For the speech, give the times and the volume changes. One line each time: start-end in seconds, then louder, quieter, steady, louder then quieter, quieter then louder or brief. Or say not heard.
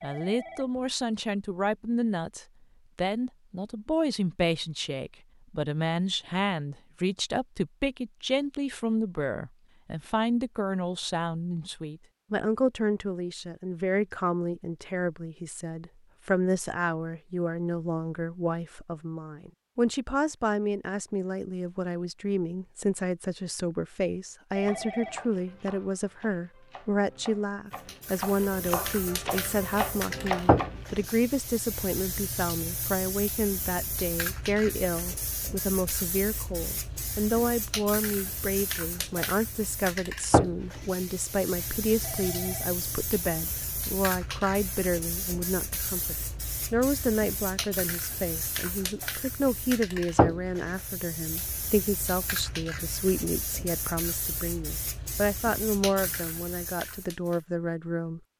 0.0-58.2 steady.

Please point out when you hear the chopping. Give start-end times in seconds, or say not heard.
24.6-30.9.